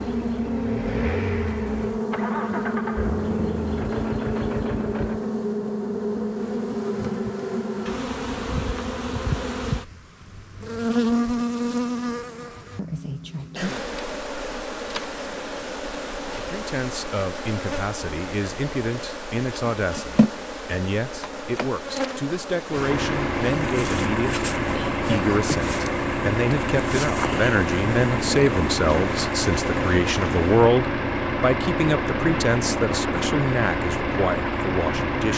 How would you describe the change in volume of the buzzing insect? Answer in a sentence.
The volume of the buzzing insect goes down.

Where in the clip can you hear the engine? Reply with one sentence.
The engine can be heard from 0.0 to 5.3 s and from 22.6 to 35.3 s.